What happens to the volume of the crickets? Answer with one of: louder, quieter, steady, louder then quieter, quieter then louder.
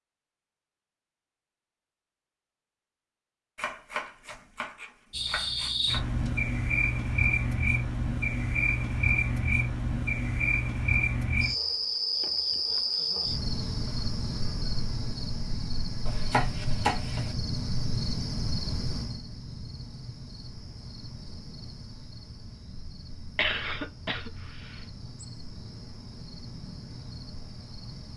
quieter.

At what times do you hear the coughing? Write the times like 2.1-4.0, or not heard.
23.4-24.9.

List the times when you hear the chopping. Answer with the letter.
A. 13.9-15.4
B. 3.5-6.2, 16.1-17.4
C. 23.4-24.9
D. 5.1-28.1
B.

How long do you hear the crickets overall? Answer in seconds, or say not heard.
23 s.